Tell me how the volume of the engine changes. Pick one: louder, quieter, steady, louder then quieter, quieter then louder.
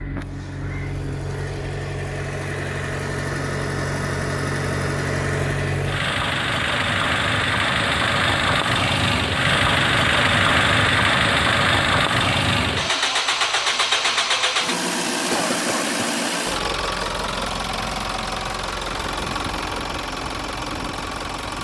louder then quieter.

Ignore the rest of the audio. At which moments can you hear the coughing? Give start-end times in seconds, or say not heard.
15.1-16.1.